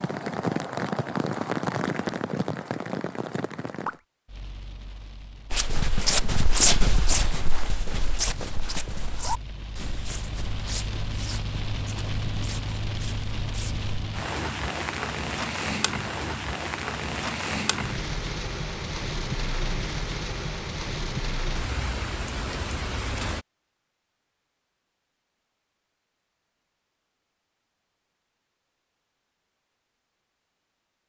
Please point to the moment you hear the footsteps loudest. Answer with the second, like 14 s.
7 s.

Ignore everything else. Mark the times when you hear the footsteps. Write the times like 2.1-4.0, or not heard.
5.5-13.9.